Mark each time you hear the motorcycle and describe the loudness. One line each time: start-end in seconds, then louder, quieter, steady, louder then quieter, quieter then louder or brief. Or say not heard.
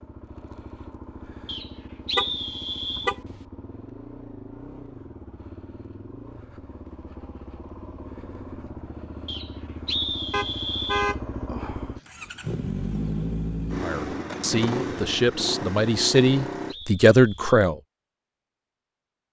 0.0-16.8 louder.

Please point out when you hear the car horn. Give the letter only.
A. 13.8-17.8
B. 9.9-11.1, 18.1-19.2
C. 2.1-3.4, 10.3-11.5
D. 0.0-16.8
C.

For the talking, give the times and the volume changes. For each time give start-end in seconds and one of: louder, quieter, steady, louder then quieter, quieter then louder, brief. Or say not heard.
13.8-17.8 louder.